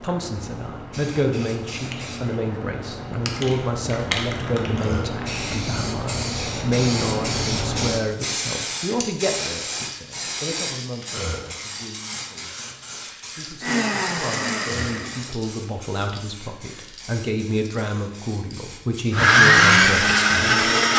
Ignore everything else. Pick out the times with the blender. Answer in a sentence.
You can hear the blender from 13.6 to 15.3 s and from 19.1 to 20.9 s.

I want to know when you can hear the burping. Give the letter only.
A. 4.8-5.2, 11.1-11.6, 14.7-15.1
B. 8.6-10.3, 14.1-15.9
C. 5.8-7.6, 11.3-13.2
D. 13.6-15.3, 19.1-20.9
A.